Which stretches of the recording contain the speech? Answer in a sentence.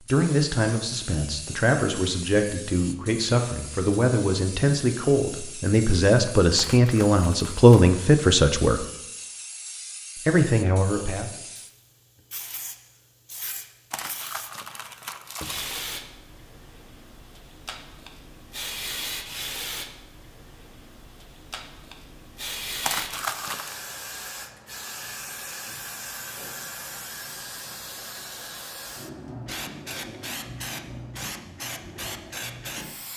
You can hear the speech from 0.1 to 8.8 s and from 10.2 to 11.3 s.